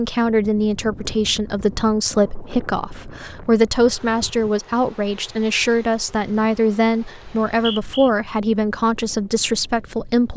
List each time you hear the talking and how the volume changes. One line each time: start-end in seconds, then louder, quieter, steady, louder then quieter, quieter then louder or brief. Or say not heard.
0.0-10.3 steady.